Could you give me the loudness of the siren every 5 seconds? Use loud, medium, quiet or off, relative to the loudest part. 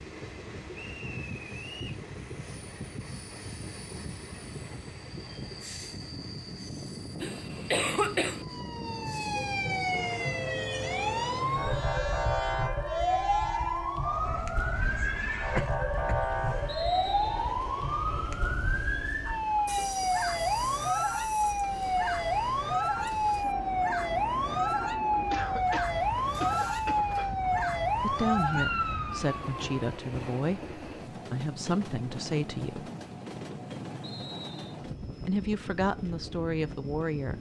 off, medium, loud, loud, loud, loud, off, off.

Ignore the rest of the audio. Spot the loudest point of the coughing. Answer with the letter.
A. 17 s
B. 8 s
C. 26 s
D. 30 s
B.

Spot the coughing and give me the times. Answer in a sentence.
The coughing can be heard from 7.2 to 8.4 s, from 15.6 to 16.8 s and from 25.3 to 27.2 s.